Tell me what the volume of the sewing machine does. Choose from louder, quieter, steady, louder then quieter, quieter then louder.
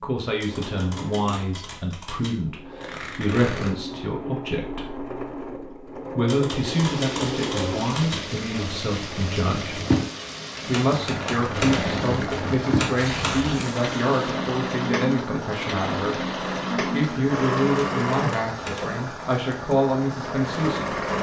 louder.